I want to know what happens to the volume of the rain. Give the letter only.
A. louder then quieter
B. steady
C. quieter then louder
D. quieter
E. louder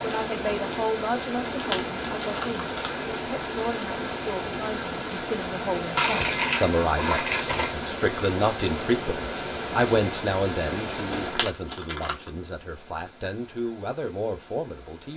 D.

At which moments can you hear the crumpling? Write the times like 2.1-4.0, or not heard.
1.5-3.0, 6.0-7.8, 11.1-12.3.